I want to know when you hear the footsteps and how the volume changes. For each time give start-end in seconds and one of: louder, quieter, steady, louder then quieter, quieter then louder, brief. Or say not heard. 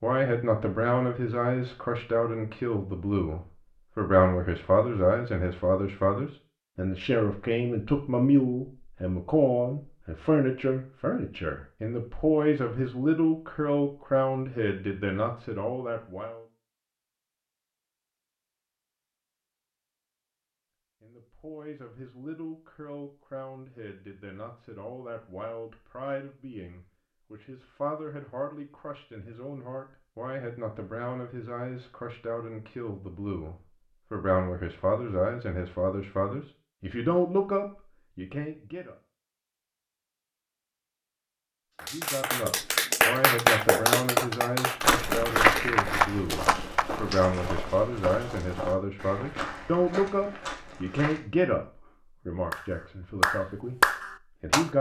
44.8-51.2 quieter.